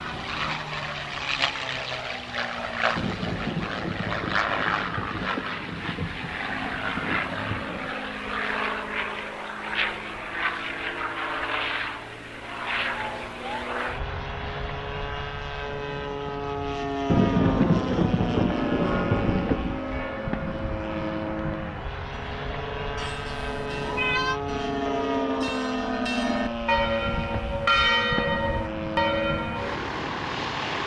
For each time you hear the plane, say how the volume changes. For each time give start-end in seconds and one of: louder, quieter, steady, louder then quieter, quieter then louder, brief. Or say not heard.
0.0-30.8 steady.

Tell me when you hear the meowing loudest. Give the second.
24 s.